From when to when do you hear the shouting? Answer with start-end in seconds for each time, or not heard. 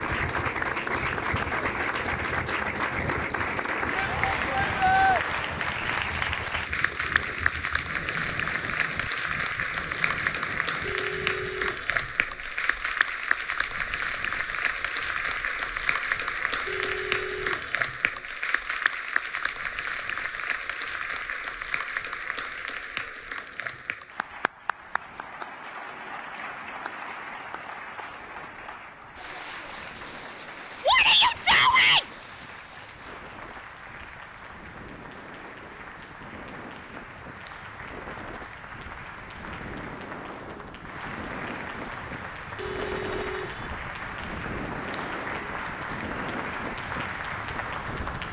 4.0-5.2, 30.9-32.0.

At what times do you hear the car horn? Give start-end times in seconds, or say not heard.
10.8-12.1, 16.6-17.8, 42.5-43.7.